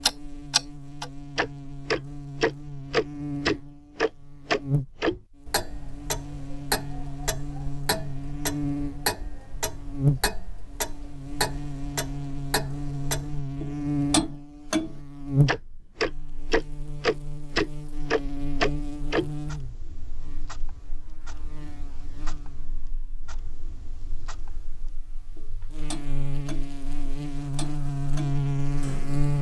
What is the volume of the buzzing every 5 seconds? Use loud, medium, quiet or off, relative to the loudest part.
medium, medium, loud, loud, quiet, loud.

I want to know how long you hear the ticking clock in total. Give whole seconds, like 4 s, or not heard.
29 s.